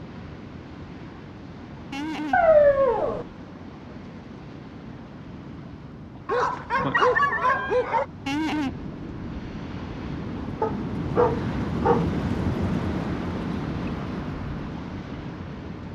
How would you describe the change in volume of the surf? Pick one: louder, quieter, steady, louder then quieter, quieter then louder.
louder.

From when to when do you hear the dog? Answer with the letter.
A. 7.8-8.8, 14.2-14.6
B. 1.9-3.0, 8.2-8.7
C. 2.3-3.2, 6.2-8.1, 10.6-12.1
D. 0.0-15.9
C.